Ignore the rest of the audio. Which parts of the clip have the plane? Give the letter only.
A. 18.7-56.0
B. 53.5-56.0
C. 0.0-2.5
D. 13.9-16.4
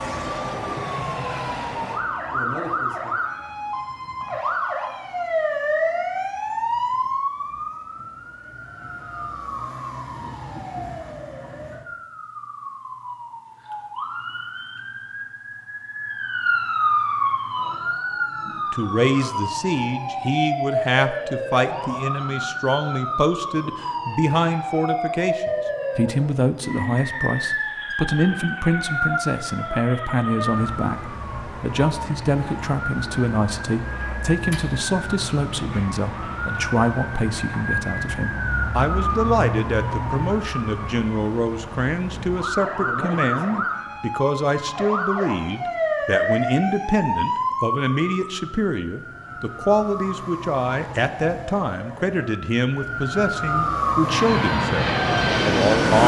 B.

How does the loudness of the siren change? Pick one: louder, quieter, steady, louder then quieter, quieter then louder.
steady.